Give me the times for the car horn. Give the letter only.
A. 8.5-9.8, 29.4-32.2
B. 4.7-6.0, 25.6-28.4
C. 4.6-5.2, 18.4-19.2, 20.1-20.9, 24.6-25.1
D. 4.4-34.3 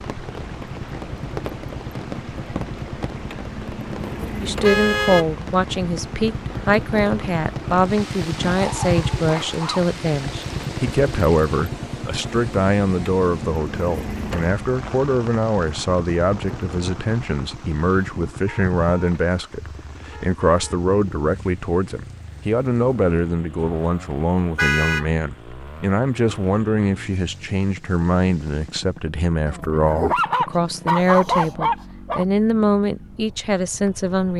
C.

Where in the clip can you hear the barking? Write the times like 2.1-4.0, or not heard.
8.5-9.8, 29.4-32.2.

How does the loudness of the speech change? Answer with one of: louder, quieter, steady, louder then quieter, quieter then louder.
steady.